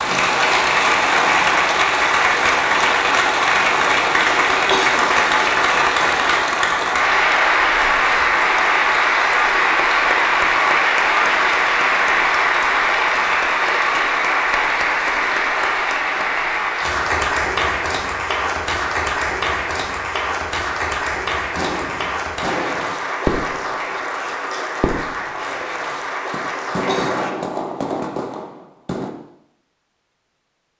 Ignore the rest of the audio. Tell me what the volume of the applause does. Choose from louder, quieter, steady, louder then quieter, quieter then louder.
quieter.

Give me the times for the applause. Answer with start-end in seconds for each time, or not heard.
0.0-27.4.